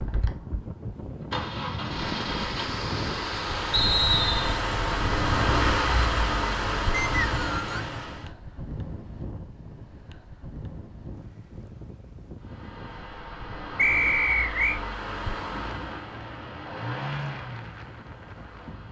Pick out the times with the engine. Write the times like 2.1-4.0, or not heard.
0.0-8.2, 12.4-18.8.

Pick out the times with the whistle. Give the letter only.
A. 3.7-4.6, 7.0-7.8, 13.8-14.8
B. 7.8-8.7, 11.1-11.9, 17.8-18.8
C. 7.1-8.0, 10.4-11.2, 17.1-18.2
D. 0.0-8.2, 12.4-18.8
A.